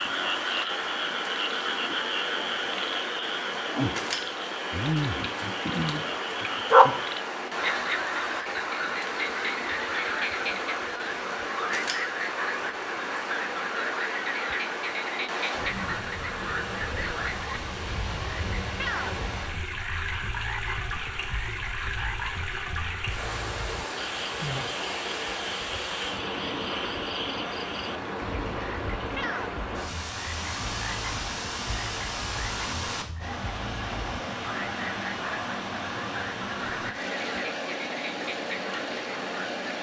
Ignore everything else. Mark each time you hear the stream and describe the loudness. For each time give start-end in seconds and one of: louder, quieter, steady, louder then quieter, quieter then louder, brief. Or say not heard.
0.0-39.7 steady.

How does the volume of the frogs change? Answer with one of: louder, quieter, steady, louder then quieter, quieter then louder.
quieter.